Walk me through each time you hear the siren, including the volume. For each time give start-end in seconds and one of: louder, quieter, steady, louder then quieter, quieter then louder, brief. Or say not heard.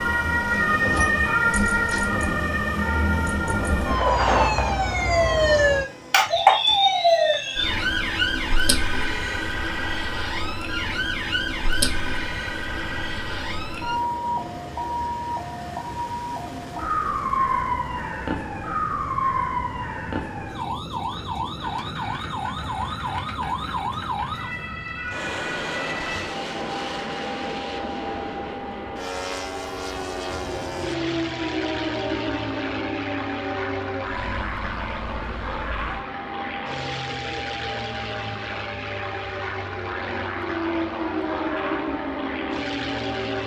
0.0-43.4 quieter.